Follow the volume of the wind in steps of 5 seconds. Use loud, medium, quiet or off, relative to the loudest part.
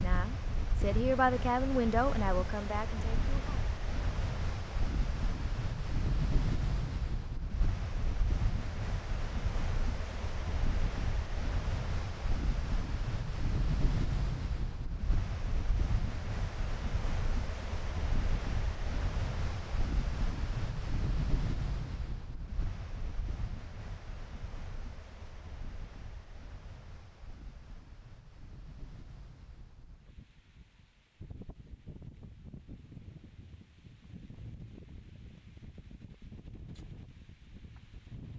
loud, loud, loud, loud, loud, quiet, quiet, quiet.